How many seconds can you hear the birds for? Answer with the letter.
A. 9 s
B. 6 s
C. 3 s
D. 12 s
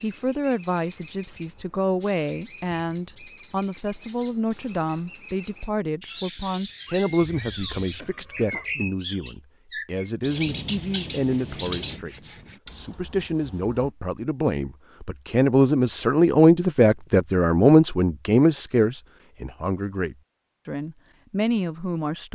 D.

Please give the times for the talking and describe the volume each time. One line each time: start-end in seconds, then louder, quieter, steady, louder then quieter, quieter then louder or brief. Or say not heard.
0.0-22.3 louder.